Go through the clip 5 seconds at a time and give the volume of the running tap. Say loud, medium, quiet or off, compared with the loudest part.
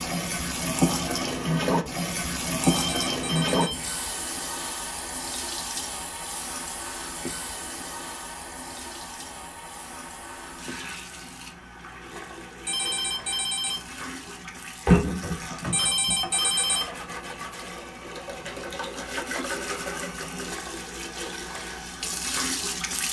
loud, medium, loud, medium, medium.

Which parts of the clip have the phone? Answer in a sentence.
You can hear the phone from 2.6 to 3.8 s, from 12.7 to 13.8 s and from 15.7 to 16.9 s.